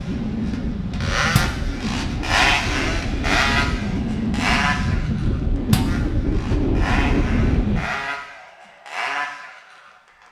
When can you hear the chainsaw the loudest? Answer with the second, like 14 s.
3 s.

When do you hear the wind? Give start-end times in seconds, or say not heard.
0.0-7.8.